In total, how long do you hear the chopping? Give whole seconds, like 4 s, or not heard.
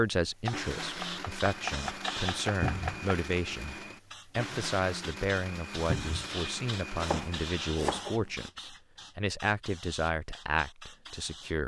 4 s.